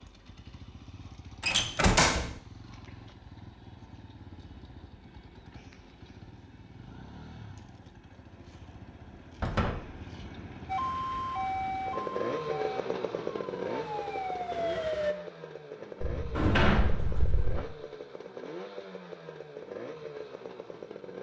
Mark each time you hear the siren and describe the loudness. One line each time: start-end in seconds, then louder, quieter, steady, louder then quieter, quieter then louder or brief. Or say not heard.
10.7-15.2 quieter then louder.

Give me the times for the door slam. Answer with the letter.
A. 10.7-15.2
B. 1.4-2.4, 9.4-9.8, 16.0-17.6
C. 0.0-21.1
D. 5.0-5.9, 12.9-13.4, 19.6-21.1
B.